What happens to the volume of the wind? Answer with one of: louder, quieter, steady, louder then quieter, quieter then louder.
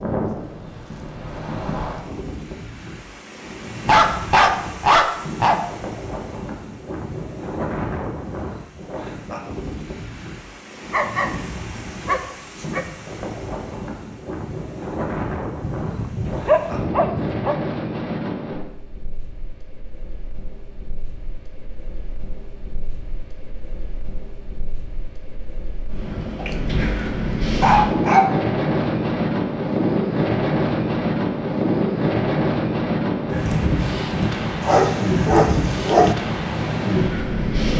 louder.